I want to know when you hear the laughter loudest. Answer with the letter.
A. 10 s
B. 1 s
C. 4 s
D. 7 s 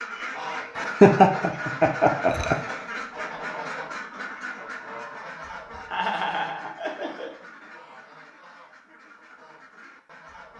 B.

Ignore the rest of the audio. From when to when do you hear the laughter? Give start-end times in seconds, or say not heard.
0.8-2.5, 5.9-7.3.